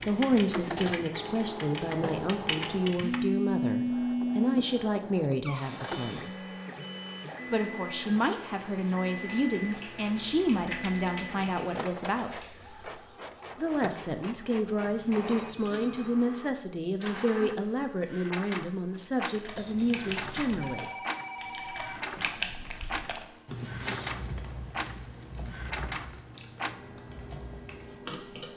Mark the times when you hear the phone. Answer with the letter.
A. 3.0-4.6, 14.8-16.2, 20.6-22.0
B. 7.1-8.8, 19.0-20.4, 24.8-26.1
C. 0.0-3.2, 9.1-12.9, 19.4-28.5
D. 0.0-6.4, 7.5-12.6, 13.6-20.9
A.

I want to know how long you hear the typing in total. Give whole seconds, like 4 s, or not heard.
16 s.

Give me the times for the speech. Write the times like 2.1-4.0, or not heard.
0.0-6.4, 7.5-12.6, 13.6-20.9.